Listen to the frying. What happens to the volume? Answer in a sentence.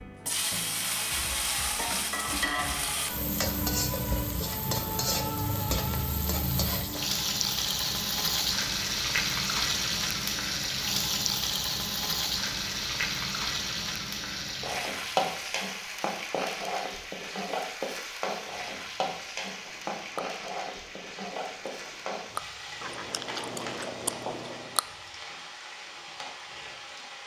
The volume of the frying goes down.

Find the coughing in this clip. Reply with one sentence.
The coughing can't be heard in this clip.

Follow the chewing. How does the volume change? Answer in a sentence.
The volume of the chewing goes down, then up.